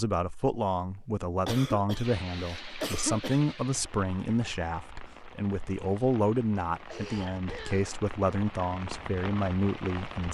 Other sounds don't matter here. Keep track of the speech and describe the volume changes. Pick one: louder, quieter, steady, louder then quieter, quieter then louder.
steady.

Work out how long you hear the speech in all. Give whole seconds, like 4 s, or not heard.
10 s.